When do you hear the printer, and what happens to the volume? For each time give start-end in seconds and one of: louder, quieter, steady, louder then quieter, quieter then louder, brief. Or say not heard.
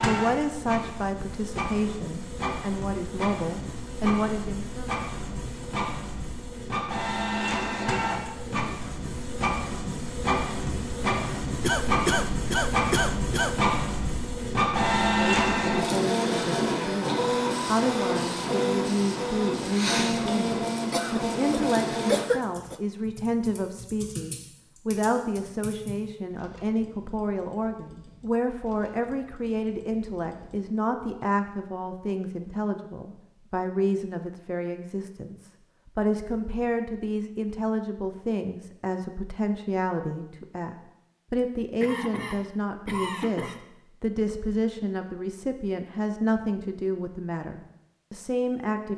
0.0-22.2 louder.